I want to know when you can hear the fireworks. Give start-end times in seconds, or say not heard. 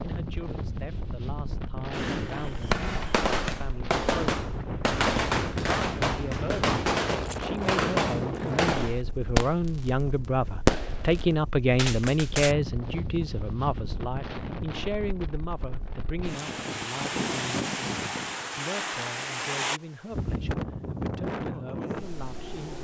1.9-9.9, 10.7-12.6.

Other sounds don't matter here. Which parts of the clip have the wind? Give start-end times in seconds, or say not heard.
0.0-22.7.